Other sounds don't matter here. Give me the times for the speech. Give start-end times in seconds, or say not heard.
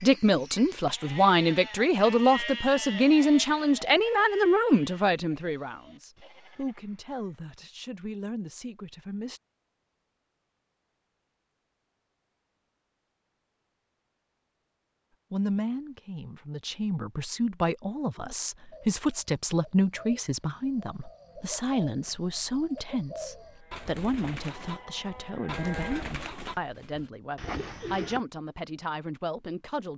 0.0-9.4, 15.3-29.9.